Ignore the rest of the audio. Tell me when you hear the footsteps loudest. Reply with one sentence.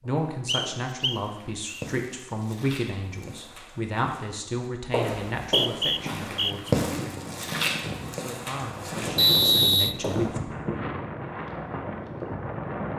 The loudest moment of the footsteps is at 7 seconds.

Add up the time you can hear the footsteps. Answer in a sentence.
You can hear the footsteps for 10 seconds altogether.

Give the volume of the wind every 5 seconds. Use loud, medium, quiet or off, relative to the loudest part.
off, loud, loud.